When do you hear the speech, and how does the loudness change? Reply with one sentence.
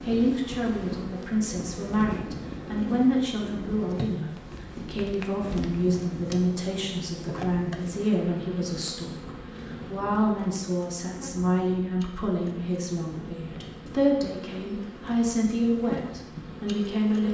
You can hear the speech from 0.0 to 17.2 s, at a steady volume.